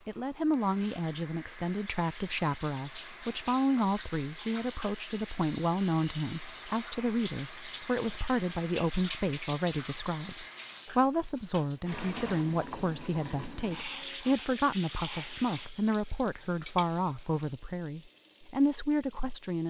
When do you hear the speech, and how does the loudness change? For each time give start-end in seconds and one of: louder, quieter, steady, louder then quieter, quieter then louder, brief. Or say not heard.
0.1-19.6 steady.